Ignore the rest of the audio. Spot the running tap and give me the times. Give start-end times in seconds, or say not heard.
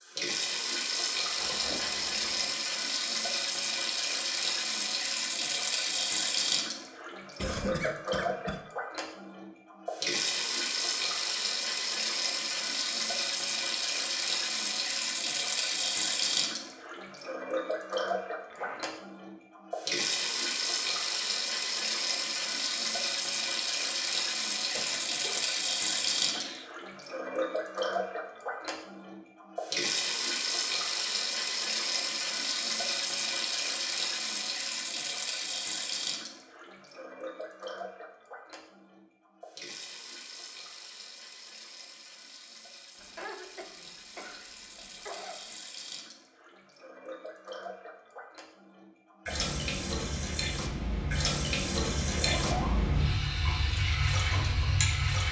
0.0-55.2.